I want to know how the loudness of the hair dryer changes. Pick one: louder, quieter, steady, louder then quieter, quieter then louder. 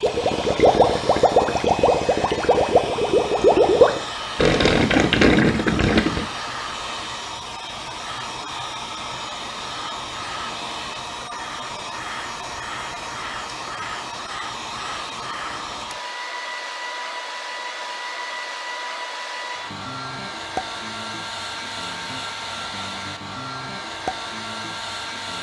steady.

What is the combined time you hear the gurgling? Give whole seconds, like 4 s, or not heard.
6 s.